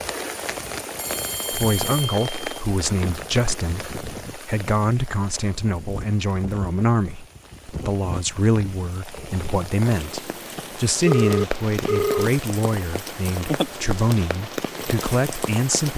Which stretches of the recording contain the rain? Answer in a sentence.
The rain can be heard from 0.0 to 15.9 s.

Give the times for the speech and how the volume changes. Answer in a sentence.
You can hear the speech from 1.5 to 15.9 s, at a steady volume.